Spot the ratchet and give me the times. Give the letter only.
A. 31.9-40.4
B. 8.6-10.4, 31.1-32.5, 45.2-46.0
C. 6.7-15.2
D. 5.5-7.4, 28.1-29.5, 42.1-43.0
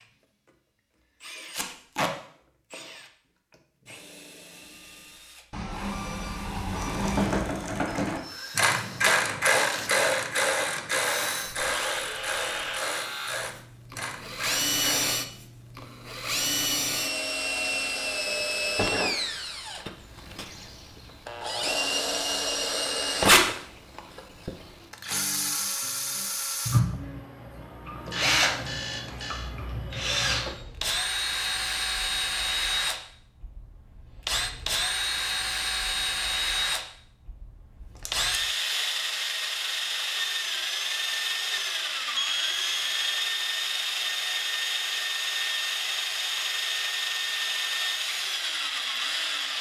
C.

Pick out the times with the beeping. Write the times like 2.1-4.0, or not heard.
5.5-7.4, 28.1-29.5, 42.1-43.0.